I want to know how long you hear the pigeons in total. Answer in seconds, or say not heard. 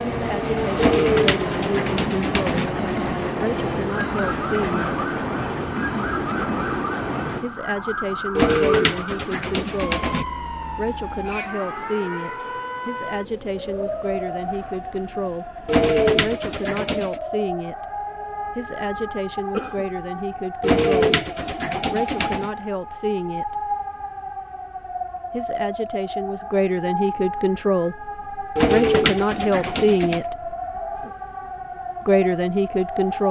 9 s.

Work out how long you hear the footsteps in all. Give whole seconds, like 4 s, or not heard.
not heard.